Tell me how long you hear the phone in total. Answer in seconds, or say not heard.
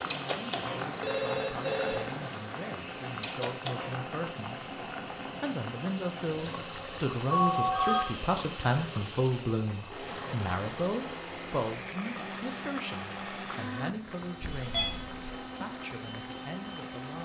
3 s.